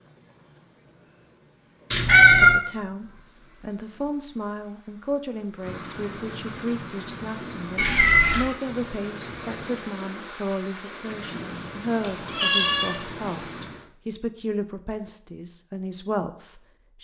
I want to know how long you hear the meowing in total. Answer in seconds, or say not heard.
3 s.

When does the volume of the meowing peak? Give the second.
2 s.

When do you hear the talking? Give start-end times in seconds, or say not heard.
2.4-16.9.